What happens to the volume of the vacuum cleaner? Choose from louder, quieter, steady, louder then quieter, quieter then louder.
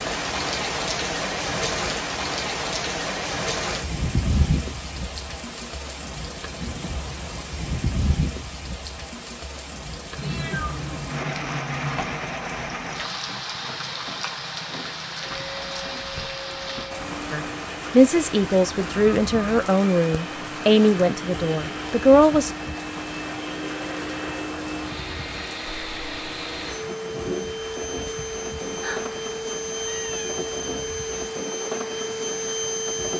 louder.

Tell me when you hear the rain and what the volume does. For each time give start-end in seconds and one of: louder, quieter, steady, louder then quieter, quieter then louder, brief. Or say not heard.
0.0-33.1 quieter.